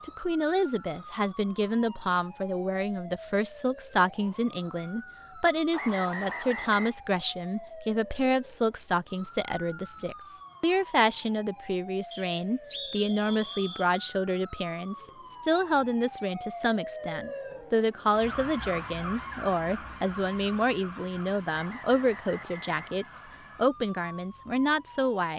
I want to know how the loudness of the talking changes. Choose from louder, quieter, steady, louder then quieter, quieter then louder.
steady.